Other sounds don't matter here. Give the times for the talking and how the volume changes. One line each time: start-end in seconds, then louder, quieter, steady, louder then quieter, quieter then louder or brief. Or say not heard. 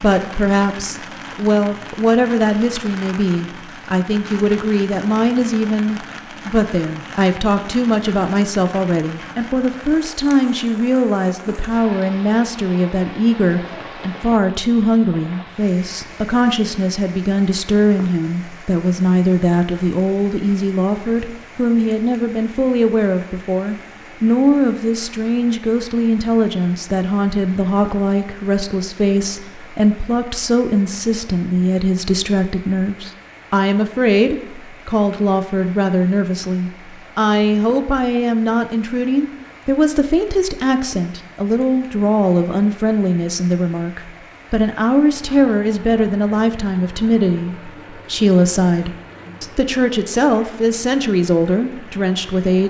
0.0-52.6 steady.